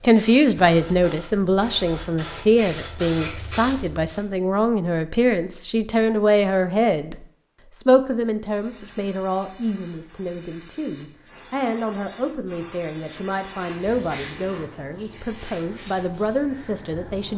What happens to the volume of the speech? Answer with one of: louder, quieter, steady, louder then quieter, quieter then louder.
quieter.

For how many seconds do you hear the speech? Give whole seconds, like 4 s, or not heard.
17 s.